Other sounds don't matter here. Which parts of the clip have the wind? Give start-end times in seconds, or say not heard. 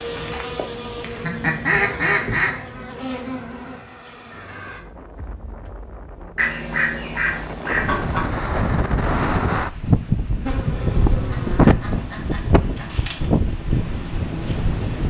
4.2-15.0.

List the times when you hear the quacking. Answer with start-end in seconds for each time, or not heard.
1.1-2.5, 6.3-8.2, 11.2-13.1.